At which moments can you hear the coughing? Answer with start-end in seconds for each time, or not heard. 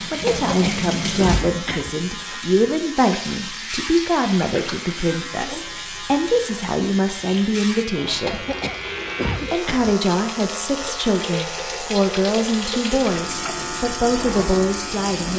0.2-1.9, 8.2-9.9.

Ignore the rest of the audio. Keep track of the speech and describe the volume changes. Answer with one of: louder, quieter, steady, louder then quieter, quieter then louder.
steady.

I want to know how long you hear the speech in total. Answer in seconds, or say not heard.
14 s.